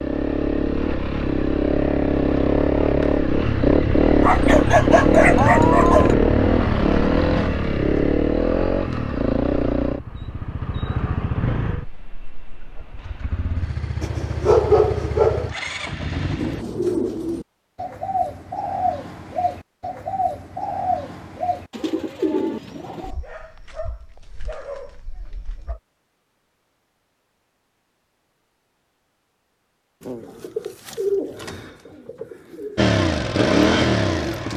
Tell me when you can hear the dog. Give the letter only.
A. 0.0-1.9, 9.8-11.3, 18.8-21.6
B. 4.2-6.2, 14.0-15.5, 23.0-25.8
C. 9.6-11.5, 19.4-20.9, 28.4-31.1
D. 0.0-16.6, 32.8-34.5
B.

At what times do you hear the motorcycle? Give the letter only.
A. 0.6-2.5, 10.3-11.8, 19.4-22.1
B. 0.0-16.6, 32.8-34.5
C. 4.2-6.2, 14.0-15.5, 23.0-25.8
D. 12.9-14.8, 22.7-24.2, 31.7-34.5
B.